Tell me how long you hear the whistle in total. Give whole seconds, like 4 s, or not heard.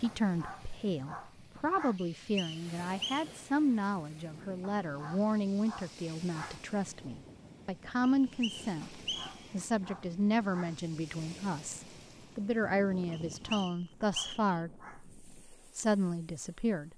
4 s.